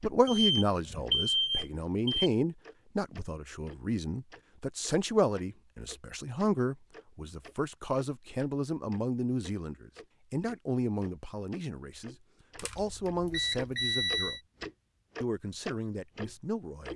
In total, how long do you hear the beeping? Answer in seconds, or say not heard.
4 s.